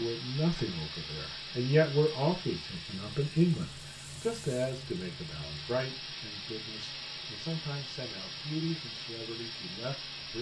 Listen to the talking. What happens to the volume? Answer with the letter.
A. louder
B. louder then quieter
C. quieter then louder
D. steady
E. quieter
E.